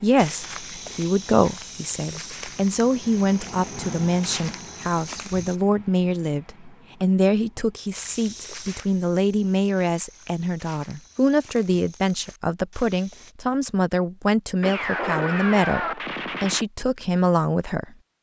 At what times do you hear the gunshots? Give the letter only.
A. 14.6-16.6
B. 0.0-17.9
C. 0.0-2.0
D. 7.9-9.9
A.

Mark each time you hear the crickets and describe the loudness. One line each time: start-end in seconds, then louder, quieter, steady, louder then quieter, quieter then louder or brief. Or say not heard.
not heard.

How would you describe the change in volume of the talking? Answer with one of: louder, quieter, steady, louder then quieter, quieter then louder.
steady.